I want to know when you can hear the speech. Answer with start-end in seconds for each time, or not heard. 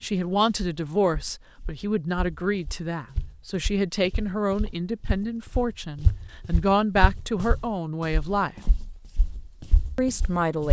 0.0-8.6, 9.9-10.6.